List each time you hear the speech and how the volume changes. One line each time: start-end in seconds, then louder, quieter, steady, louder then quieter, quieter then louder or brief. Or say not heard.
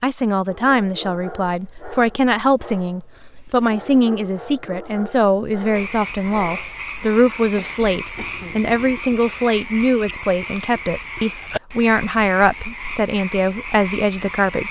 0.0-14.6 steady.